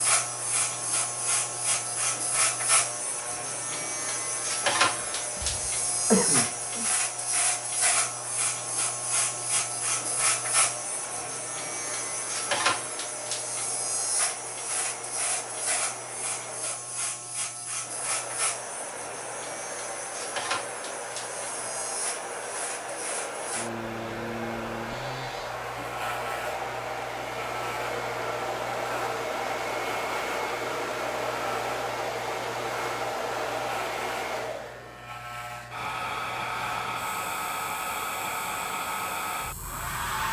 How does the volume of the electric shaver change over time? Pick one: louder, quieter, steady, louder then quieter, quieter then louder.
quieter.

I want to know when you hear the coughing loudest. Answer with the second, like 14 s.
6 s.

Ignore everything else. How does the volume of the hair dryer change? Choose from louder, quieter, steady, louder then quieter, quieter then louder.
louder.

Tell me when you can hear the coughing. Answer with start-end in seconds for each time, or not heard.
5.0-6.9.